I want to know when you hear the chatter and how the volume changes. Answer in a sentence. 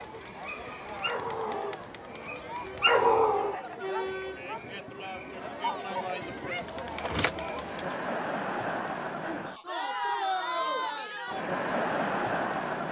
You can hear the chatter from 0.0 to 12.8 s, getting louder.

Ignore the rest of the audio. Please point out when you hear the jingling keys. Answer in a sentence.
The jingling keys can be heard from 6.6 to 8.0 s.